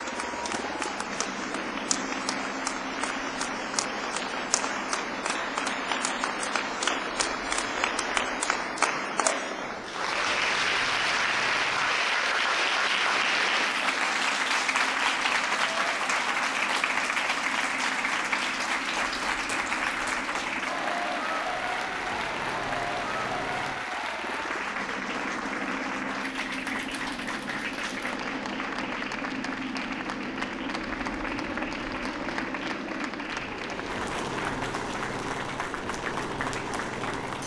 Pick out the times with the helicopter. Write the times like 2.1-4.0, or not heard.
0.0-37.4.